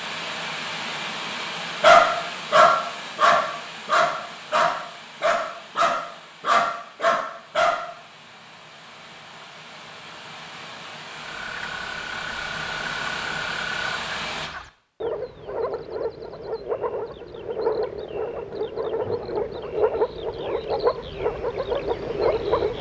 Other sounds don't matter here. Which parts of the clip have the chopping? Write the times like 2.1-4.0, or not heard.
not heard.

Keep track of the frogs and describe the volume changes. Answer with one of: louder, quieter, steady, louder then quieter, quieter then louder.
louder.